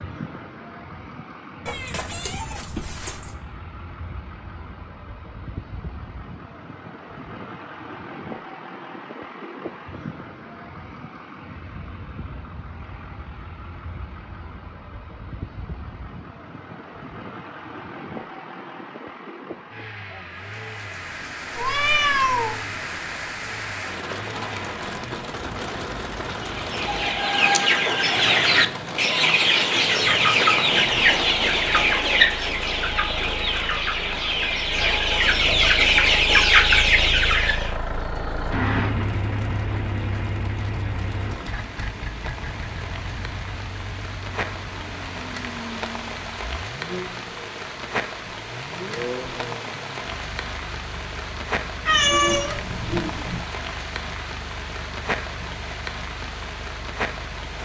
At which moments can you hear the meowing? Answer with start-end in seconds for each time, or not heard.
1.6-3.4, 21.6-22.6, 51.9-53.4.